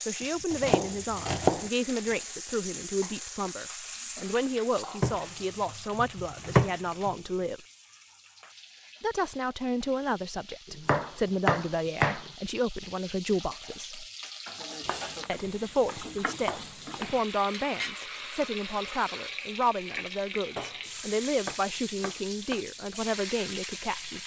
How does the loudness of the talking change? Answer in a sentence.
The loudness of the talking stays about the same.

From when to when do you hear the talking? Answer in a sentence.
You can hear the talking from 0.1 to 7.6 s, from 9.0 to 14.1 s and from 15.2 to 24.2 s.